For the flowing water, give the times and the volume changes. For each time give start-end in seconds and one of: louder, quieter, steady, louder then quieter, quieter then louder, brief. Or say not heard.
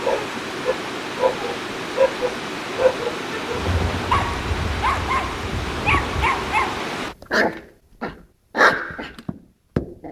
0.0-7.2 steady.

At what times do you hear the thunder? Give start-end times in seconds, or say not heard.
3.5-6.3.